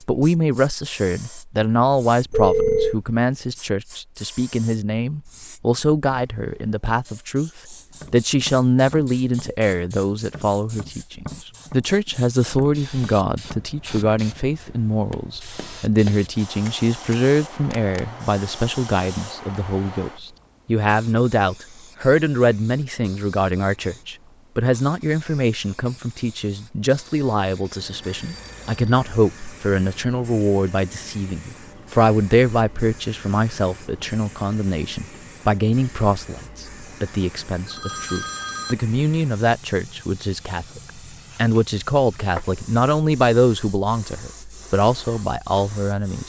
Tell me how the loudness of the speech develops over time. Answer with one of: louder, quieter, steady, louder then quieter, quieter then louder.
steady.